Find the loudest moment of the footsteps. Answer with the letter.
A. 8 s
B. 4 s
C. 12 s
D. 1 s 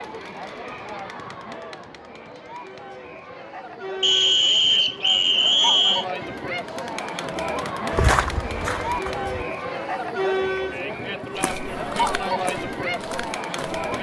A.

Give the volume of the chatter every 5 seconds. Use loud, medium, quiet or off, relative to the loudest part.
medium, loud, loud.